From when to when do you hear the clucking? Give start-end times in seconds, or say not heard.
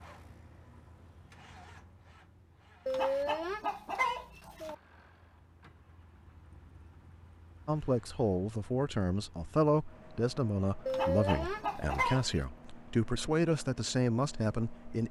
2.9-4.8, 10.8-12.4.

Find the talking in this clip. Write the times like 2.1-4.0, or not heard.
7.7-15.0.